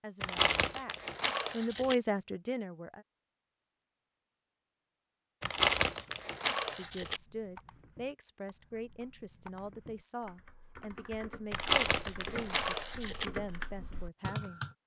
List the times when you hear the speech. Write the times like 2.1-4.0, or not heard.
0.0-3.0, 6.7-14.6.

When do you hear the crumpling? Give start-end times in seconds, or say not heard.
0.2-1.9, 5.4-7.2, 11.5-13.2.